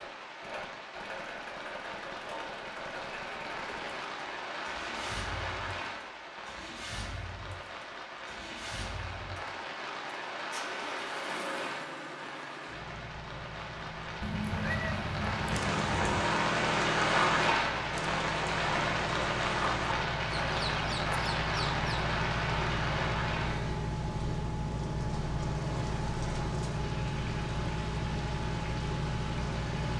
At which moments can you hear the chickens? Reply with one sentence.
The chickens can be heard from 15.5 to 21.9 s.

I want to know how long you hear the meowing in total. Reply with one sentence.
You can hear the meowing for 2 seconds altogether.